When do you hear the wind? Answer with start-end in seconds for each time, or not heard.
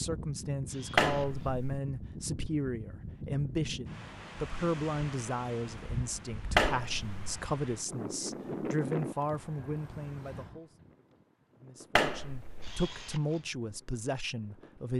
0.0-14.9.